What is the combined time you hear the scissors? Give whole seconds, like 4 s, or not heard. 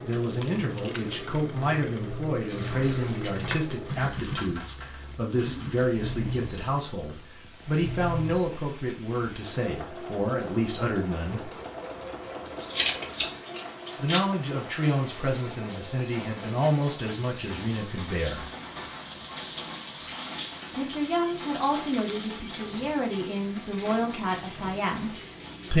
4 s.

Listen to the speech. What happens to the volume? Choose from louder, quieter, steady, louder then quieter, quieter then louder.
steady.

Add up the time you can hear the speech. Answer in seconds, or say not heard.
21 s.